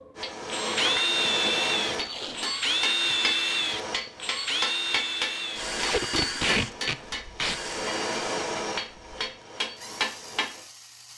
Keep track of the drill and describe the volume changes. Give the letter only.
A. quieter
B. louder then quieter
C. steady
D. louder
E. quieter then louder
A.